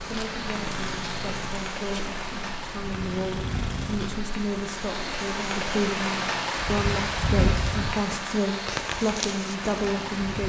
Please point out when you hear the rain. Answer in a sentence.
The rain can be heard from 0.0 to 10.4 s.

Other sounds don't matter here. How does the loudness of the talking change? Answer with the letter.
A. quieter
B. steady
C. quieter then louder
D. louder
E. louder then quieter
D.